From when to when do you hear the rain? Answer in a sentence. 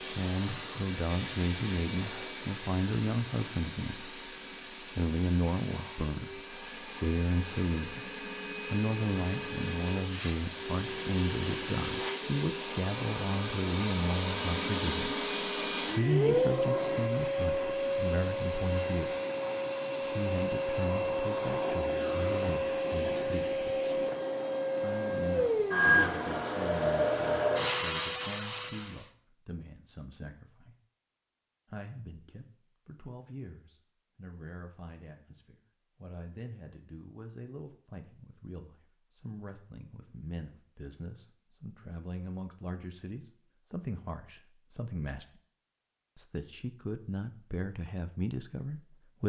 The rain can't be heard in this clip.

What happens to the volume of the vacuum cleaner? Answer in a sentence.
The volume of the vacuum cleaner goes up.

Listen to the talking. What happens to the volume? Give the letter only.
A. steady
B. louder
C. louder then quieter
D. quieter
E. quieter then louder
E.